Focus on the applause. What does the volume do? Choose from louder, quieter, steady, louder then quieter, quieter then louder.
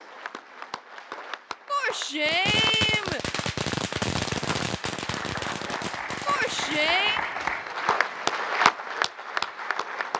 louder.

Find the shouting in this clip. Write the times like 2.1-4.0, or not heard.
1.6-3.2, 6.2-7.2.